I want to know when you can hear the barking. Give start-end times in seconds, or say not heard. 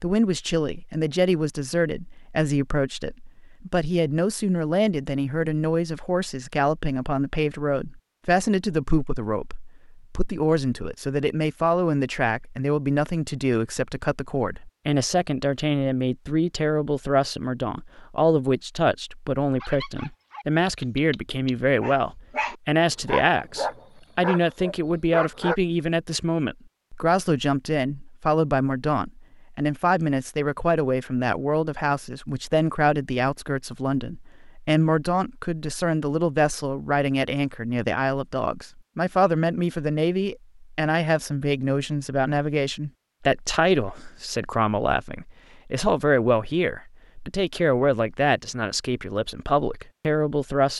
19.6-25.6.